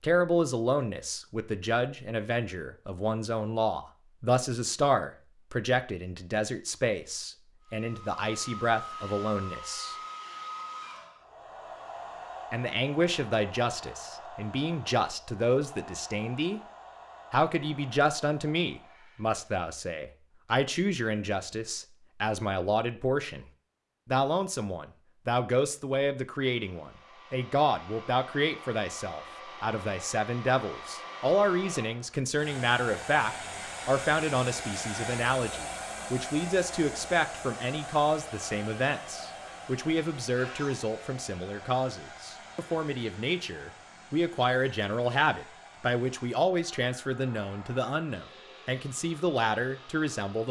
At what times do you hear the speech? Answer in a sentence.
The speech can be heard from 0.0 to 9.9 s, from 12.5 to 16.6 s, from 17.3 to 23.4 s and from 24.1 to 50.4 s.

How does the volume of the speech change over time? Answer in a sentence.
The loudness of the speech stays about the same.